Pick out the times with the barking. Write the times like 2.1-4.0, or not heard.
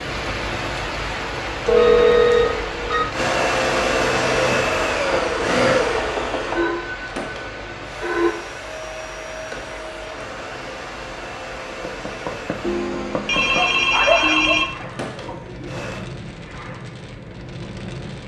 13.6-15.8.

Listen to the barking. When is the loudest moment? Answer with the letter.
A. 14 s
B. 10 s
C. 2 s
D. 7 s
A.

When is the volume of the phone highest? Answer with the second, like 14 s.
2 s.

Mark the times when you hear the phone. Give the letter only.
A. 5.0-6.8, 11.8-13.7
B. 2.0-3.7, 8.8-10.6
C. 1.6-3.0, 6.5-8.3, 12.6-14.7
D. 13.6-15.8
C.